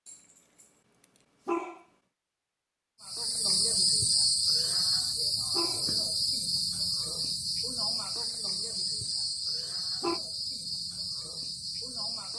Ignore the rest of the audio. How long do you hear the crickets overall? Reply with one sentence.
You can hear the crickets for 9 seconds altogether.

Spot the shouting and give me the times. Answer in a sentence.
The shouting can't be heard in this clip.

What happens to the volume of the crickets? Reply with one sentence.
The volume of the crickets goes down.